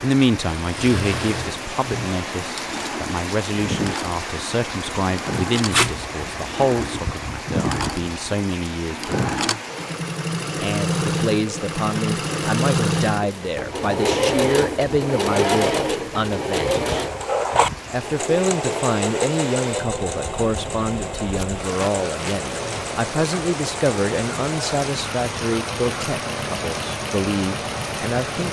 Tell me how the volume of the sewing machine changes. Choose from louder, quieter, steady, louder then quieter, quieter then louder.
louder then quieter.